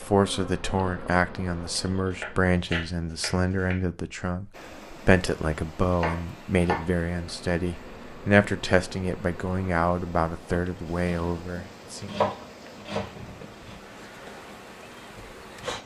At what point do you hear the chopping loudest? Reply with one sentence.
The volume of the chopping peaks at 12 seconds.